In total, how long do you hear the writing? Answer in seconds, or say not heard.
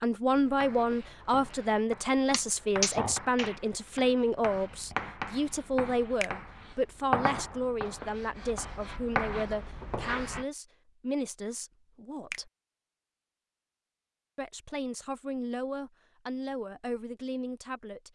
10 s.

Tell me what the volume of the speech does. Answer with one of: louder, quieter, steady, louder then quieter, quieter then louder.
quieter.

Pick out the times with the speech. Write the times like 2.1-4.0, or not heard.
0.0-12.5, 14.3-18.1.